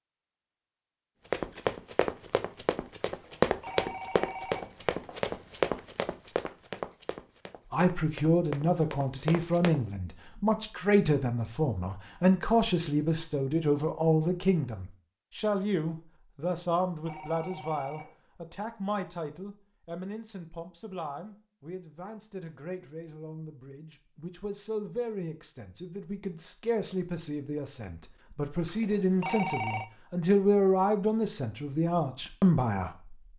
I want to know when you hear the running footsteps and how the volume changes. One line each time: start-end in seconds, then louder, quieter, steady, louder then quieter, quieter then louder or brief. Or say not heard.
1.3-9.8 louder then quieter.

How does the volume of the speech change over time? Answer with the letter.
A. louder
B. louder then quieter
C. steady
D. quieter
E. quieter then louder
E.